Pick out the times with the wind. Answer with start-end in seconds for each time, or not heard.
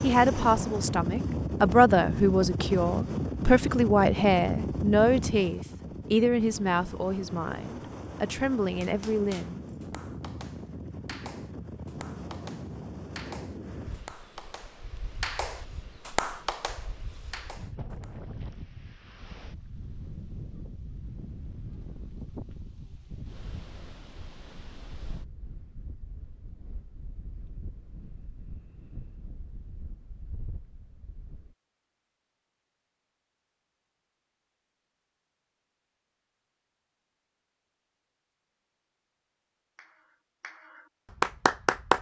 0.0-31.6.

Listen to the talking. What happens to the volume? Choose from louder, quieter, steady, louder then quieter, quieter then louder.
quieter.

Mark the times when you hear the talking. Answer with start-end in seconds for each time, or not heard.
0.0-9.6.